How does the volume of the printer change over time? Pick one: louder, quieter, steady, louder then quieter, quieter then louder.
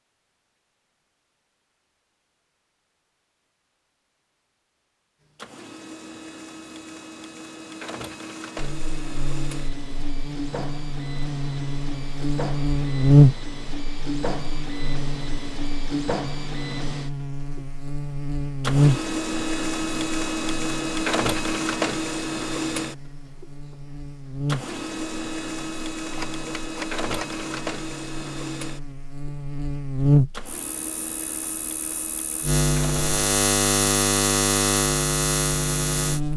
louder then quieter.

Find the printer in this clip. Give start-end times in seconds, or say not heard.
5.3-33.0.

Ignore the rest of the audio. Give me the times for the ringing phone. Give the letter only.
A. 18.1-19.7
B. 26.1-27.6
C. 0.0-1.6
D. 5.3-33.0
B.